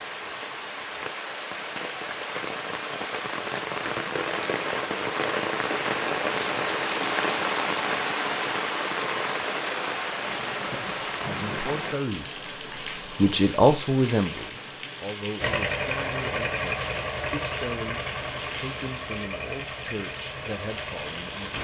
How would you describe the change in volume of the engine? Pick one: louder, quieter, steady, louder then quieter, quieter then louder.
quieter.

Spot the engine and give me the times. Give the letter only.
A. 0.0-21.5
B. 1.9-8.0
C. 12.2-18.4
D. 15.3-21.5
D.